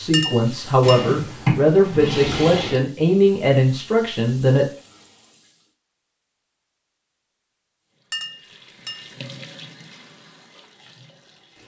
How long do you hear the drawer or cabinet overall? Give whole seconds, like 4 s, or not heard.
2 s.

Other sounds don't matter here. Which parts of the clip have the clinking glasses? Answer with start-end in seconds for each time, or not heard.
0.1-1.1, 8.1-9.1.